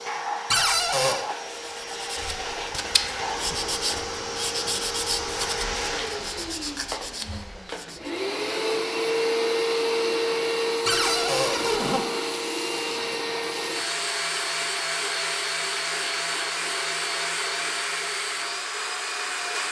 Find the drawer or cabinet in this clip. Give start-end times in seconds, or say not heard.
0.5-1.2, 10.8-12.1.